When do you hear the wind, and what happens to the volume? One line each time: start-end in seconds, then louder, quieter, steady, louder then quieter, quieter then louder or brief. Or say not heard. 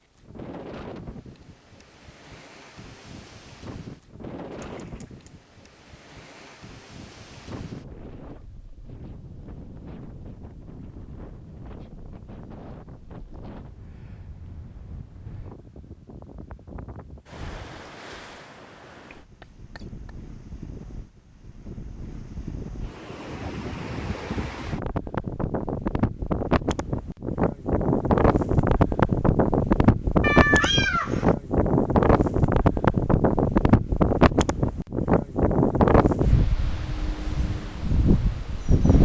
0.1-39.0 louder.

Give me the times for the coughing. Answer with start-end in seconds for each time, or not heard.
19.1-20.1.